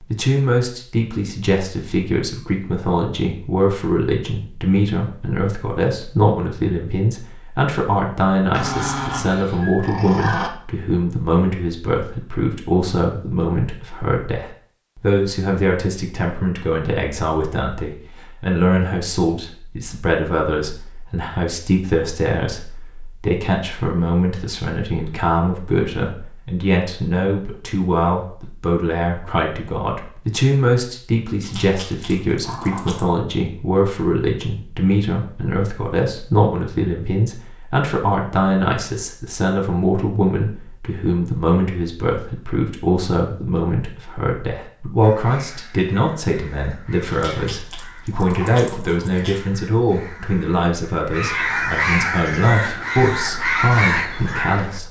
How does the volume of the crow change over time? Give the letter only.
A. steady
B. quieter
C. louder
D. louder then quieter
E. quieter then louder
C.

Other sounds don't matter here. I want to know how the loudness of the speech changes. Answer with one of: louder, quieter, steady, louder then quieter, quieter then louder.
steady.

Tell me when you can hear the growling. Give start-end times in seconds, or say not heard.
8.5-10.5, 31.4-33.1, 47.1-49.4.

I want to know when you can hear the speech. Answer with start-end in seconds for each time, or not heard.
0.0-54.8.